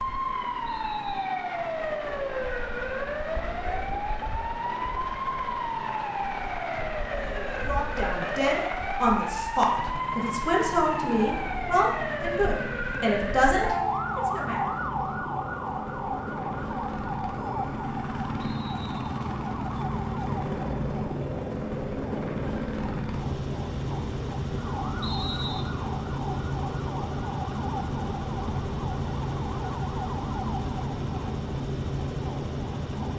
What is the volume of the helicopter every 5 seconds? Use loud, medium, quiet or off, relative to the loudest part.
medium, medium, medium, loud, loud, loud, loud.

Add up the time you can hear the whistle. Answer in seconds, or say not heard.
2 s.